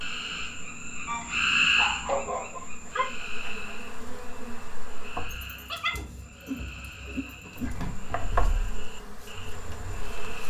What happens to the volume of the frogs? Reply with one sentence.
The volume of the frogs goes down.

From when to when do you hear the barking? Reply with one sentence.
You can hear the barking from 1.1 to 3.0 s and from 5.2 to 8.0 s.